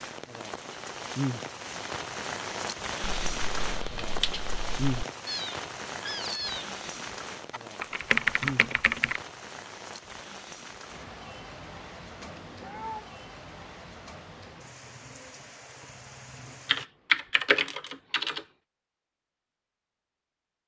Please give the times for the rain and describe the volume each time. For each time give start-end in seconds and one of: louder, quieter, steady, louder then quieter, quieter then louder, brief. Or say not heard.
0.0-16.9 quieter.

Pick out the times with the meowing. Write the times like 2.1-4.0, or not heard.
5.2-6.7, 12.2-13.1.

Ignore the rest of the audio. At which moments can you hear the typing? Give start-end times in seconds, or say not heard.
3.0-5.0, 7.5-9.2, 16.6-18.4.